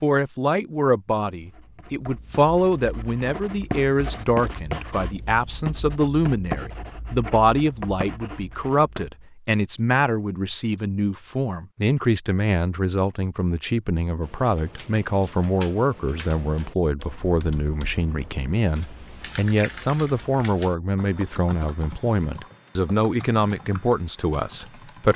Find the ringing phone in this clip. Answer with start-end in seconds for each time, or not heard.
not heard.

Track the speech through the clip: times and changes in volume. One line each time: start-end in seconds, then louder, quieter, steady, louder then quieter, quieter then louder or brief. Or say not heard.
0.0-25.1 steady.